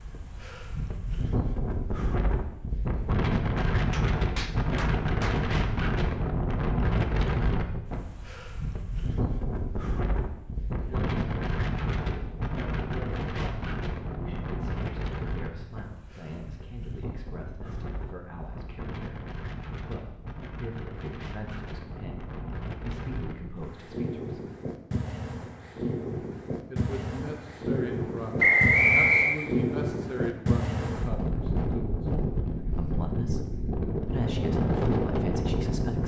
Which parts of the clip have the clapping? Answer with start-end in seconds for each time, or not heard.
3.5-5.5.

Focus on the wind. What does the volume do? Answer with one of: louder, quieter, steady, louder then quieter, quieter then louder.
quieter then louder.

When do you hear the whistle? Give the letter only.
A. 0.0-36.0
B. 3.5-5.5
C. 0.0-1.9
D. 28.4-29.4
D.